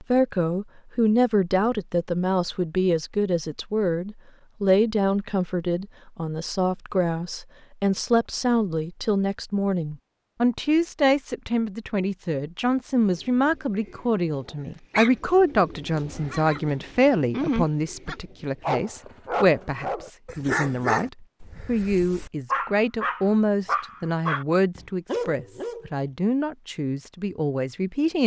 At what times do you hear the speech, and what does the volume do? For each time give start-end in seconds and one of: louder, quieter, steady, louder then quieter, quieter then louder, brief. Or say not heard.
0.0-28.2 steady.